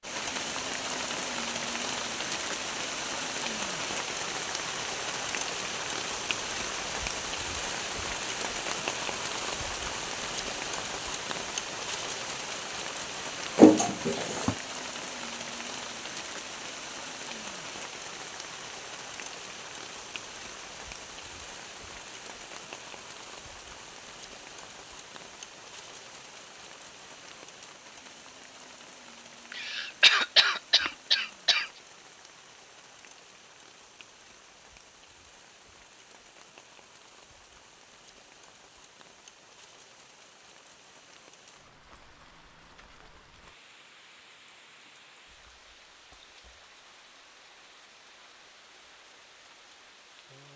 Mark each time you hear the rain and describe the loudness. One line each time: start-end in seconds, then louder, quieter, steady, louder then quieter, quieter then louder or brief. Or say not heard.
0.0-50.5 quieter.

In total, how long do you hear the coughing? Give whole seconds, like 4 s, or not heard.
3 s.